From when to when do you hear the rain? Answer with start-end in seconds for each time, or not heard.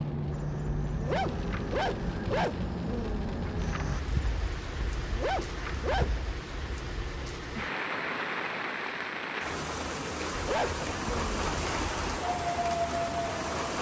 0.0-13.7.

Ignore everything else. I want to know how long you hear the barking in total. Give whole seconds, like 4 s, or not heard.
9 s.